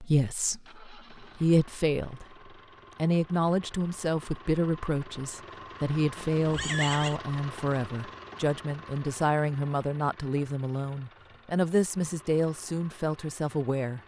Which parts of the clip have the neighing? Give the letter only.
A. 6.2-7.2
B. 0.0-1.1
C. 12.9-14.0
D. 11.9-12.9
A.